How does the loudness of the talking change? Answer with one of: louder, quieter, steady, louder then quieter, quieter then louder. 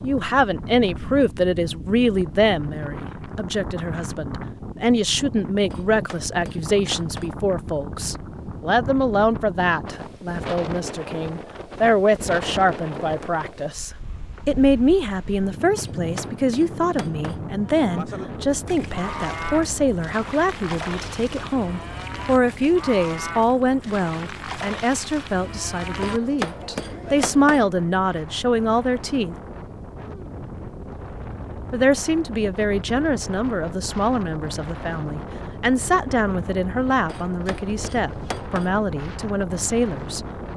steady.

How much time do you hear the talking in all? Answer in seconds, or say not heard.
38 s.